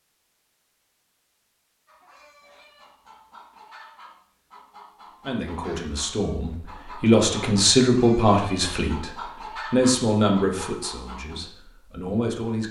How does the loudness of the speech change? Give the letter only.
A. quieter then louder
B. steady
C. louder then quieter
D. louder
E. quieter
C.